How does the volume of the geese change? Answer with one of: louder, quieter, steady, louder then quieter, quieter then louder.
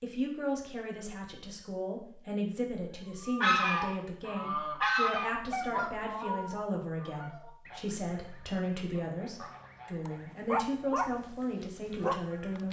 quieter.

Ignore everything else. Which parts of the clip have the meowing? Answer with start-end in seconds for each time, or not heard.
not heard.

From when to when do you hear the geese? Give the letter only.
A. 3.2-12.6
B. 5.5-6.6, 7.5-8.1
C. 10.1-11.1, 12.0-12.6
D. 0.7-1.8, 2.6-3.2
A.